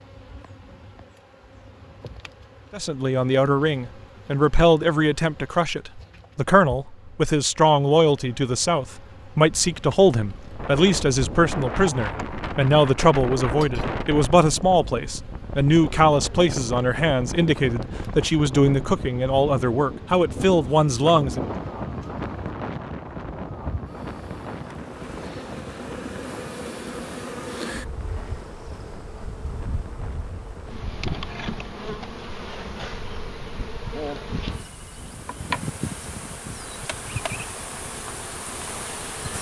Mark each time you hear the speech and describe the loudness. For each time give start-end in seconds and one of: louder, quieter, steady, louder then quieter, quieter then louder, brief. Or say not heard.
2.7-21.4 steady.